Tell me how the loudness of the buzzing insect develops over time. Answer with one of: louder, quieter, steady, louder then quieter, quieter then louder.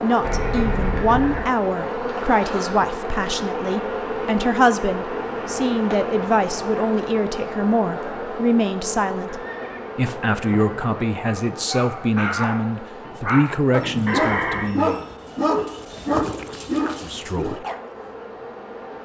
quieter.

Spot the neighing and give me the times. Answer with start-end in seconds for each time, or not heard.
0.2-1.4, 9.2-11.1, 14.1-14.8.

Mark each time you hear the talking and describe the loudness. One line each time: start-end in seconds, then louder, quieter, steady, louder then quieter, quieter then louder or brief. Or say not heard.
0.0-15.0 steady
17.0-17.6 brief.